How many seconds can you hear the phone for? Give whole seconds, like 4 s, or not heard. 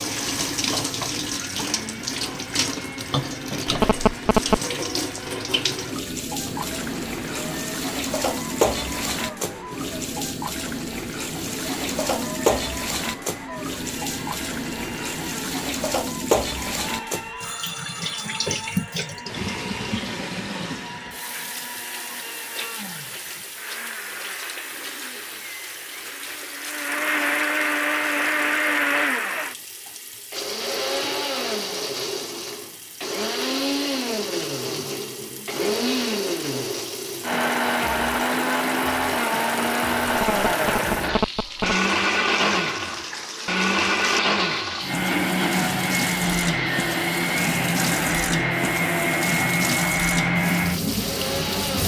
3 s.